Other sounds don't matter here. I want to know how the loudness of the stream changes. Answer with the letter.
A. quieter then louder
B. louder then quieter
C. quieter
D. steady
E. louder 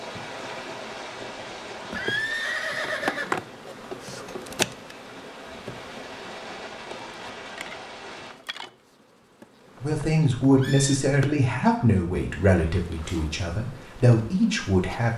A.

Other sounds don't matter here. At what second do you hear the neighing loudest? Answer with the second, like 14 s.
2 s.